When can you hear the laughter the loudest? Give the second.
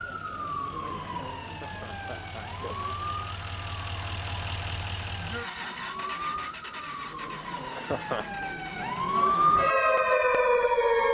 8 s.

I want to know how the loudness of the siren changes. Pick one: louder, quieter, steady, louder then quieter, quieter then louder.
louder.